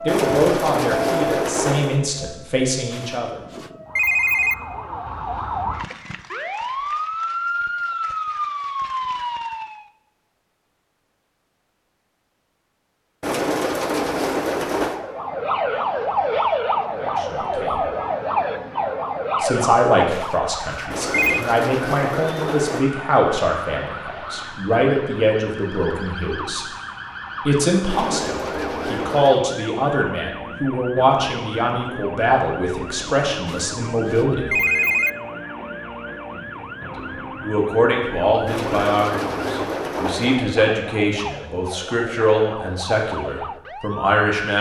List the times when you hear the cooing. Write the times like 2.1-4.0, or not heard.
0.1-2.0, 13.2-15.0, 20.9-22.9, 27.9-29.4, 38.5-40.4.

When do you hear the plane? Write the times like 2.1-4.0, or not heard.
not heard.